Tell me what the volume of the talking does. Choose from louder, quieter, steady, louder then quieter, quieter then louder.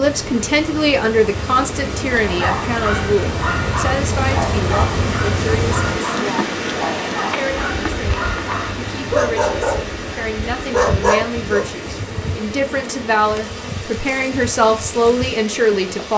quieter then louder.